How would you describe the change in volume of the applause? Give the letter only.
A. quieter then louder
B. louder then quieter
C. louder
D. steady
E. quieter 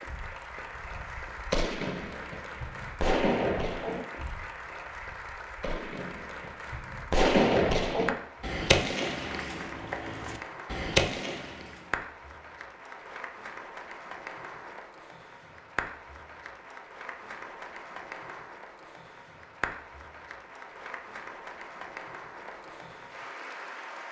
D.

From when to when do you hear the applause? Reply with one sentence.
You can hear the applause from 0.0 to 24.0 s.